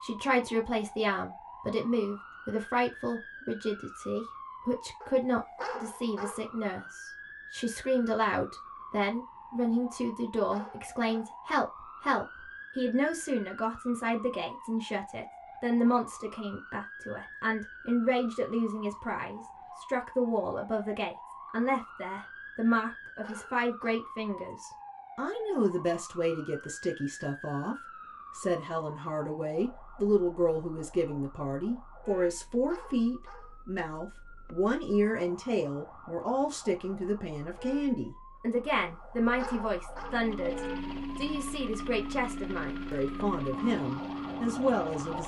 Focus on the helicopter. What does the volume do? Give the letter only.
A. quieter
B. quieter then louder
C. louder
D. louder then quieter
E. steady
E.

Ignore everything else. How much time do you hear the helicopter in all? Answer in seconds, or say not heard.
5 s.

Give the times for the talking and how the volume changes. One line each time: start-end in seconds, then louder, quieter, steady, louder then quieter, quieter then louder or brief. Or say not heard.
0.0-45.2 steady.